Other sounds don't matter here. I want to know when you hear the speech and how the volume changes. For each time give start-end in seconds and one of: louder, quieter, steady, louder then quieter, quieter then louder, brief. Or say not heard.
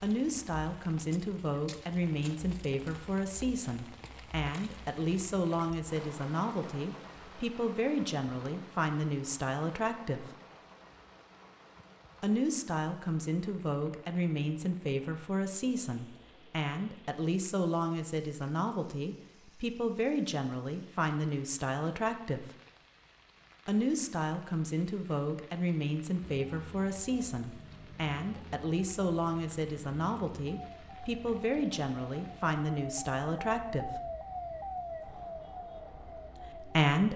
0.0-10.2 steady
12.2-22.4 steady
23.6-33.9 steady
36.4-37.1 brief.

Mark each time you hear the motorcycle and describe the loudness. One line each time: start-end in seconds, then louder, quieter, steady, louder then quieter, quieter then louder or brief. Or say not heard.
not heard.